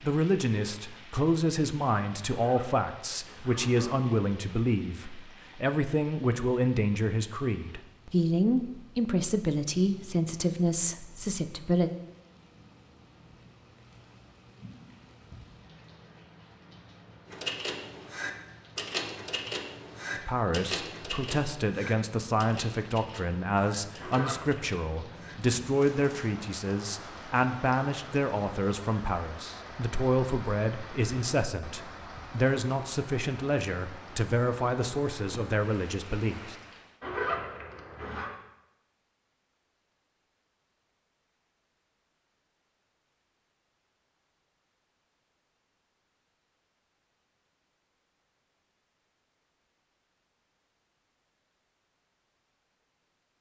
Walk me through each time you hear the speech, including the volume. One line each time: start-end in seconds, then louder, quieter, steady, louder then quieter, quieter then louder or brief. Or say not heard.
0.0-11.9 steady
20.1-36.5 steady.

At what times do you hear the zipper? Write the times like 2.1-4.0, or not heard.
2.3-4.0, 23.9-24.6, 37.0-38.3.